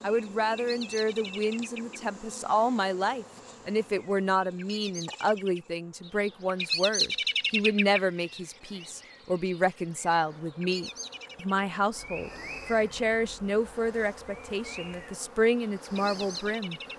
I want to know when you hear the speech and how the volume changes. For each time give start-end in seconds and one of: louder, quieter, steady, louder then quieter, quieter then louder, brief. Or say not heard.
0.0-16.8 steady.